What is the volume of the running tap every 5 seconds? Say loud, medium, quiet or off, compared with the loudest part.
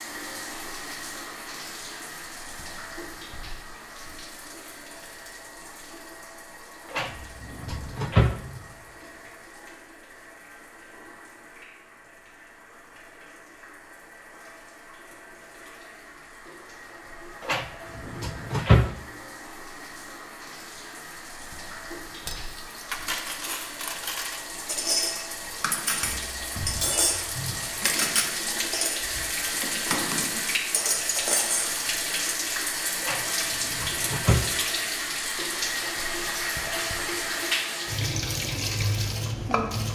medium, quiet, quiet, quiet, medium, loud, loud, loud.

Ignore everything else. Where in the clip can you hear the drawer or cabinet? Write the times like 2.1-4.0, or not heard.
6.9-8.4, 17.4-18.9, 33.0-34.5.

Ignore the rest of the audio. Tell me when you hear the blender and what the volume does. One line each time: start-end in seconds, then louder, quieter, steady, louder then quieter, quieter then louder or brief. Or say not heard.
not heard.